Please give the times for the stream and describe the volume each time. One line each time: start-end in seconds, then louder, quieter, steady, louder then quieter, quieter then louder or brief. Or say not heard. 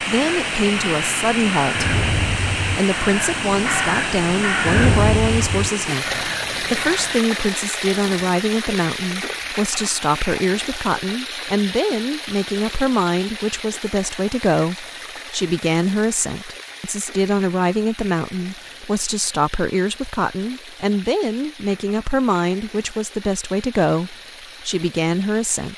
0.0-25.7 quieter.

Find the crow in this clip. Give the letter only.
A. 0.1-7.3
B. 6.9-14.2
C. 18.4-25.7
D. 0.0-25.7
A.